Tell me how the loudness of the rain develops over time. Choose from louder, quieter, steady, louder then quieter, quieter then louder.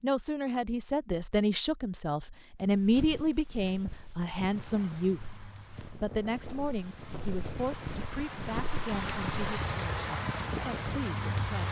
louder.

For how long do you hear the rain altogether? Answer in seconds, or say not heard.
7 s.